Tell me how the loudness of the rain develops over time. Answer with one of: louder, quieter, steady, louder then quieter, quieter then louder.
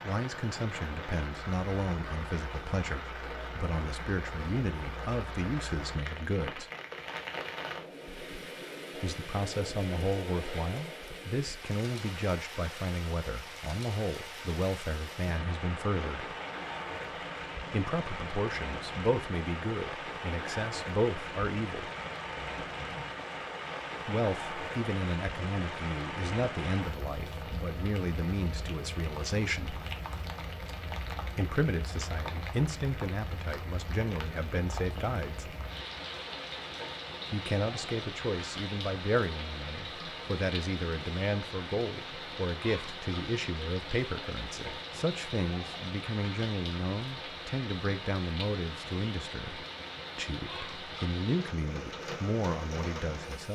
steady.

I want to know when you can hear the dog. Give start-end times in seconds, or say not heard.
not heard.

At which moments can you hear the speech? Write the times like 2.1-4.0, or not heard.
0.0-6.7, 8.9-16.4, 17.7-21.9, 24.1-29.8, 31.4-35.5, 37.3-53.5.